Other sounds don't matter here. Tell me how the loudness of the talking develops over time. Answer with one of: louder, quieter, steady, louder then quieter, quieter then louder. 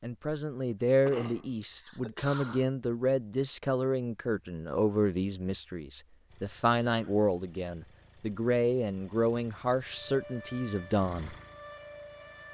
steady.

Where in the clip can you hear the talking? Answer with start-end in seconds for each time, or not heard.
0.0-11.3.